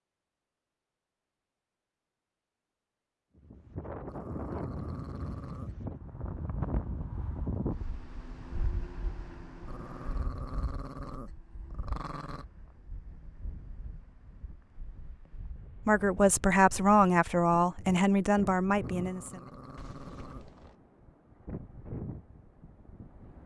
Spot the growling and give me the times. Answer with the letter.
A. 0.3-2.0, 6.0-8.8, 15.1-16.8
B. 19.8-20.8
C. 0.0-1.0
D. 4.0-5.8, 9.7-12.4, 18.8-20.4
D.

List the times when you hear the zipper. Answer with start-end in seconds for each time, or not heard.
19.8-20.8.